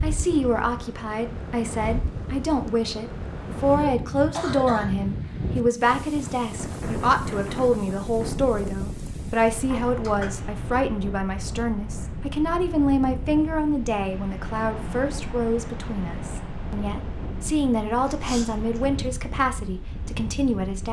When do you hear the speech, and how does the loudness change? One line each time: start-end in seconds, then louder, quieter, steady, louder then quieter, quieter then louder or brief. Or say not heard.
0.0-20.8 steady.